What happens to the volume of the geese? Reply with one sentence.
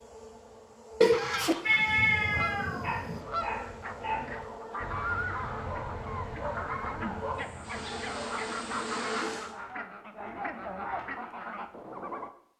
The volume of the geese stays about the same.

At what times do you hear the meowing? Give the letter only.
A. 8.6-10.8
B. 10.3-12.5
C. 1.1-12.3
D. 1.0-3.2
D.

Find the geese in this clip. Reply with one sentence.
The geese can be heard from 1.1 to 12.3 s.